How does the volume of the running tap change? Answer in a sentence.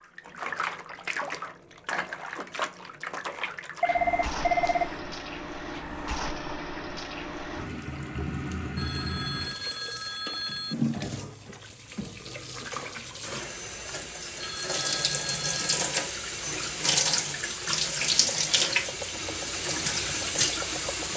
The loudness of the running tap goes up.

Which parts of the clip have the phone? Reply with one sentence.
You can hear the phone from 3.8 to 4.9 s, from 8.8 to 10.8 s and from 14.4 to 15.8 s.